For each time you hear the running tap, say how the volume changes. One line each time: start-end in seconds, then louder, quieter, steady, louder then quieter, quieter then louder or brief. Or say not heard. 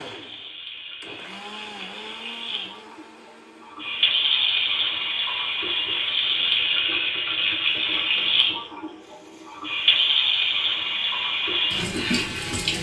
0.0-12.7 louder.